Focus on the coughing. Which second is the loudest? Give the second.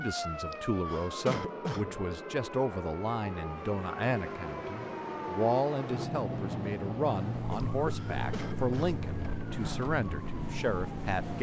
1 s.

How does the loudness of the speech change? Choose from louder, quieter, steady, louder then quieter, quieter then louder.
steady.